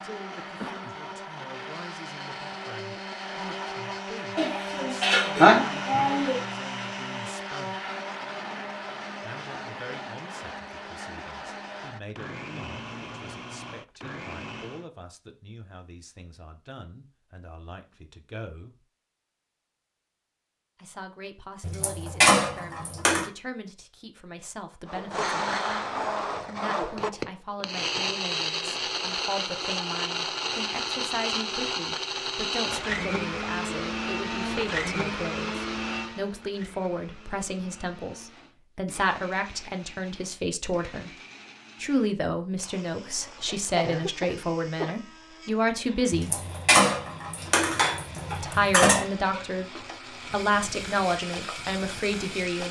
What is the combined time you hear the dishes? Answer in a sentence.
The dishes can be heard for 7 seconds in total.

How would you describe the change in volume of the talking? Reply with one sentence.
The volume of the talking goes up.